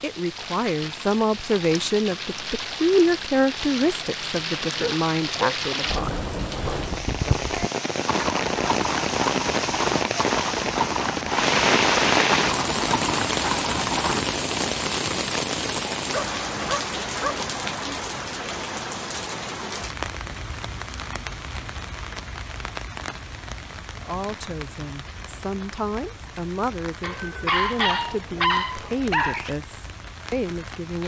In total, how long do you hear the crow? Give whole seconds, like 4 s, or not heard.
not heard.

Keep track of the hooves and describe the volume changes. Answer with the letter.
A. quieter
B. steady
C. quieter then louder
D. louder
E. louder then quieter
B.